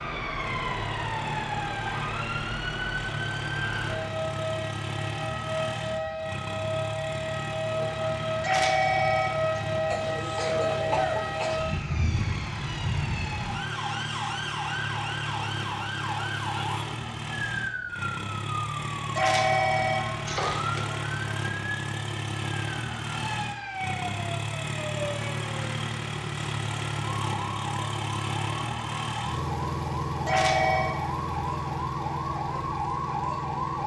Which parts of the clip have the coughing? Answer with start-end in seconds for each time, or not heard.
9.8-11.7.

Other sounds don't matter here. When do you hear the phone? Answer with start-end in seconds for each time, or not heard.
8.4-9.6, 19.1-20.9, 30.2-30.9.